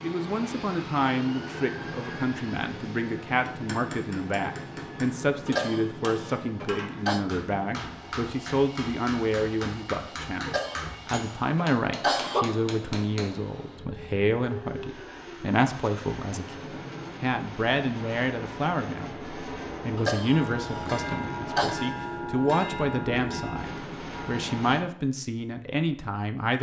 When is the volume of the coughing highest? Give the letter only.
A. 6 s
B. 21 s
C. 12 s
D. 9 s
C.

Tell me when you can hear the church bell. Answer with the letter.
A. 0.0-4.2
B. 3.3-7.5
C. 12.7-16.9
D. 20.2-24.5
D.